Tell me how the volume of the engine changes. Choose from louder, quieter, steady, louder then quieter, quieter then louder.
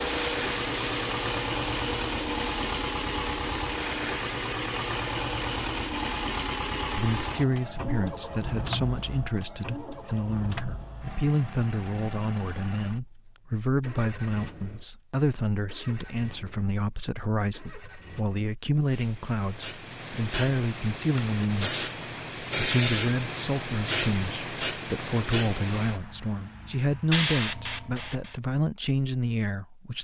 quieter.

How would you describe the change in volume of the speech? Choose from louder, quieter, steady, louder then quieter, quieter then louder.
steady.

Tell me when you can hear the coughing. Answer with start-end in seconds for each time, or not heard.
not heard.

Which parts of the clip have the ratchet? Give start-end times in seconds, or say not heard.
not heard.